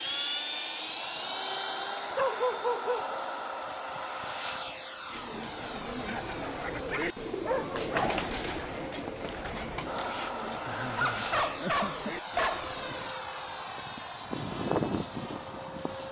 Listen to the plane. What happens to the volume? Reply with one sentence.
The loudness of the plane goes down, then up.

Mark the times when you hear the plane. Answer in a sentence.
You can hear the plane from 0.0 to 16.0 s.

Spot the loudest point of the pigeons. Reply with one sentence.
The loudest moment of the pigeons is at 8 seconds.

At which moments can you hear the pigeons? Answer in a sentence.
The pigeons can be heard from 5.0 to 13.1 s.